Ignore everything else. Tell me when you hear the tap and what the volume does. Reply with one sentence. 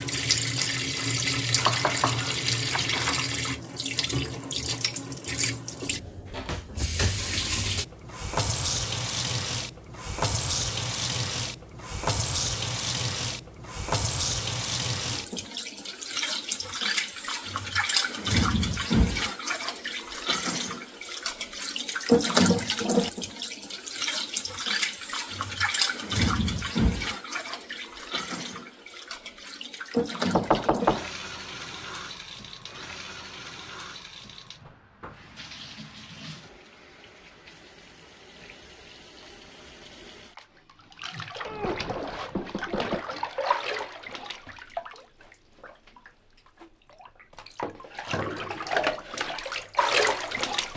The tap can be heard from 0.0 to 50.7 s, getting quieter then louder.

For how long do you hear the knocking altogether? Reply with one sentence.
The knocking can be heard for 4 seconds in total.